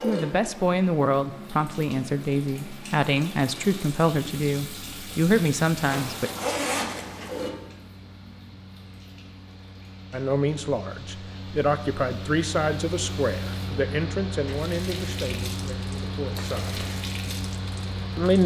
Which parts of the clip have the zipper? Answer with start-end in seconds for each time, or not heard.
5.8-7.5, 16.4-17.0.